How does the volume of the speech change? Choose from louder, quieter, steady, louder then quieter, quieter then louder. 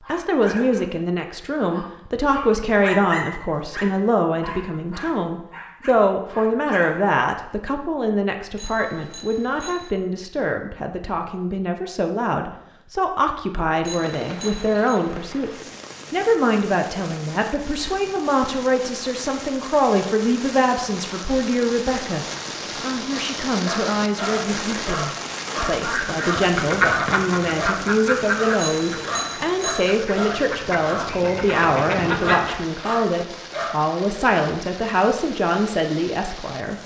steady.